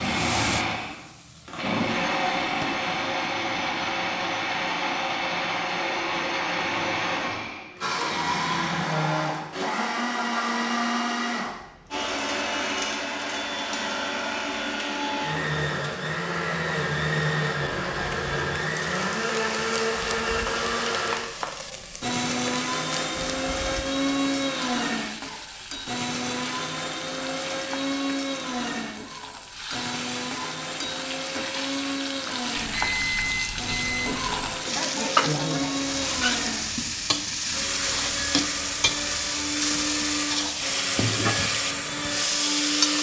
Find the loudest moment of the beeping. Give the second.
33 s.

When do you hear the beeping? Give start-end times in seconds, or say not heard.
32.5-34.5.